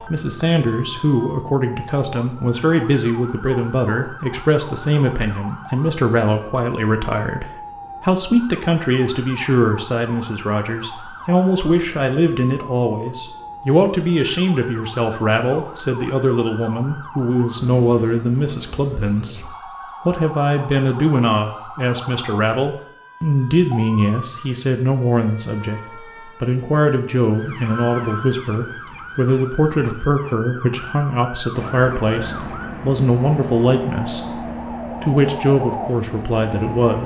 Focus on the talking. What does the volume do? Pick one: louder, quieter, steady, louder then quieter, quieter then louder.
steady.